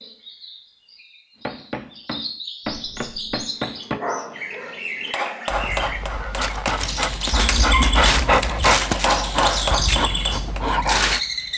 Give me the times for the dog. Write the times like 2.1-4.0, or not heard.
2.6-11.2.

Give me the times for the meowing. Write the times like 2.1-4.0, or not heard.
7.3-8.4.